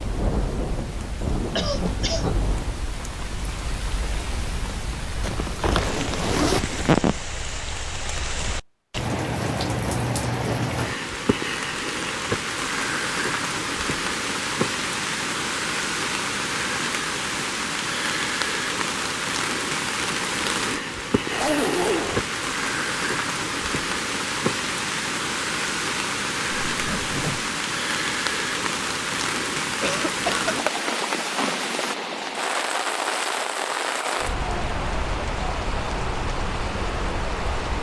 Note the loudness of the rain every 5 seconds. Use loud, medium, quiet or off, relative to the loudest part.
medium, loud, loud, loud, loud, loud, loud, loud.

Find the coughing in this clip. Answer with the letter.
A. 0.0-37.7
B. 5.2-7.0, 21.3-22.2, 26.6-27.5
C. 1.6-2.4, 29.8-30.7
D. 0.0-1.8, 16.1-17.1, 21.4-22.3
C.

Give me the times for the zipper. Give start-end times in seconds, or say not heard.
5.2-7.0, 21.3-22.2, 26.6-27.5.